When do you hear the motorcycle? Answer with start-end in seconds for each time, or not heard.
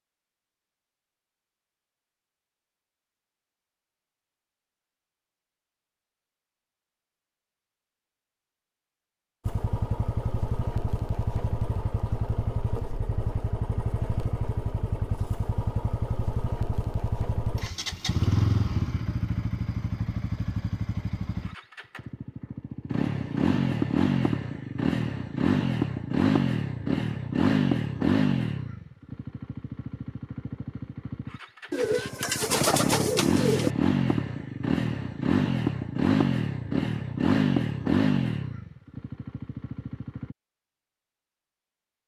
9.4-40.4.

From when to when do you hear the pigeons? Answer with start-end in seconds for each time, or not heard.
31.7-33.8.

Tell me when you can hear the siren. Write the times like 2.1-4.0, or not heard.
not heard.